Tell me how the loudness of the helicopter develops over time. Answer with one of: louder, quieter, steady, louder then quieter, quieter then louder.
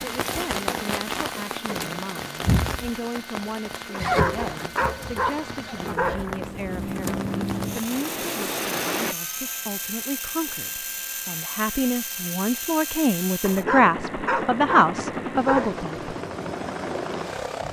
louder.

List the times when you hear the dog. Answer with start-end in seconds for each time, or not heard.
3.9-6.4, 13.4-15.8.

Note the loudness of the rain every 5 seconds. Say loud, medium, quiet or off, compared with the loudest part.
loud, loud, off, off.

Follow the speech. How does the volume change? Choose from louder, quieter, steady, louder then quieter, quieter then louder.
louder.